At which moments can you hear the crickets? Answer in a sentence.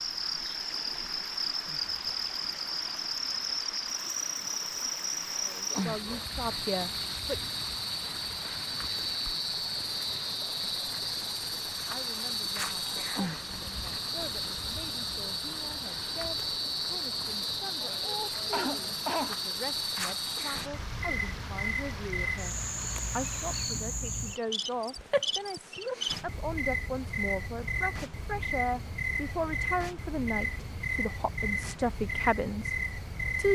You can hear the crickets from 0.0 to 33.4 s.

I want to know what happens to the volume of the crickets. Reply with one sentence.
The loudness of the crickets stays about the same.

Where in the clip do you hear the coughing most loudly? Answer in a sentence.
The volume of the coughing peaks at 19 seconds.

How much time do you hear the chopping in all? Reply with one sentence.
The chopping can't be heard in this clip.